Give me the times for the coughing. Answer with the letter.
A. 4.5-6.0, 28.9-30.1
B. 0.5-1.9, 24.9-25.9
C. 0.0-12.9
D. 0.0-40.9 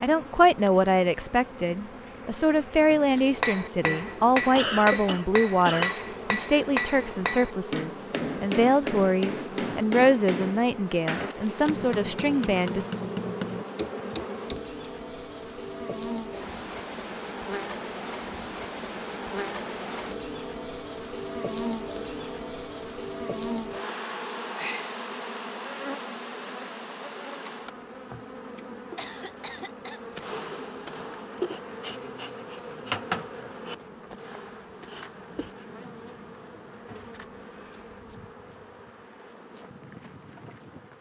A.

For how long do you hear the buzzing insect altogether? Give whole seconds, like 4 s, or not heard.
41 s.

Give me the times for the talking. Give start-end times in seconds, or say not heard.
0.0-12.9.